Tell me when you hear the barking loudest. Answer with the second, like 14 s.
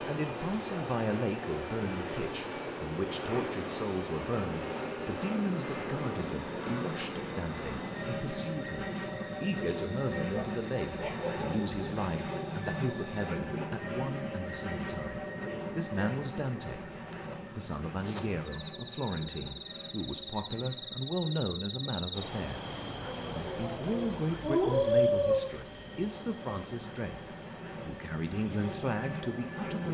25 s.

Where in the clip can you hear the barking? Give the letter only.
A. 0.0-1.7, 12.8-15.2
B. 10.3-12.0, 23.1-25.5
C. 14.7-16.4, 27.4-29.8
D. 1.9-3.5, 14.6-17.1
B.